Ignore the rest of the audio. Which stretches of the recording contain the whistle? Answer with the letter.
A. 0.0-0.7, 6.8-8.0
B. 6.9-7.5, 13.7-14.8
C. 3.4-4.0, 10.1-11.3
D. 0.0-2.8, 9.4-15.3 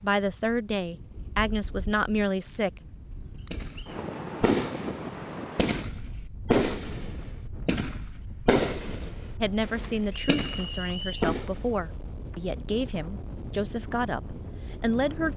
C.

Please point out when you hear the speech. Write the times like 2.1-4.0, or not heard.
0.0-2.8, 9.4-15.3.